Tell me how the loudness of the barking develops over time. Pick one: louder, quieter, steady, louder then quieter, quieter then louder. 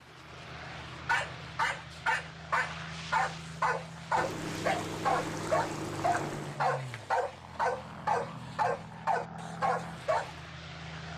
steady.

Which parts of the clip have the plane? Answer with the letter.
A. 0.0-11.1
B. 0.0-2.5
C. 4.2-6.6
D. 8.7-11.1
A.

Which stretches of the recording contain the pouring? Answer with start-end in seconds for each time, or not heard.
4.2-6.6.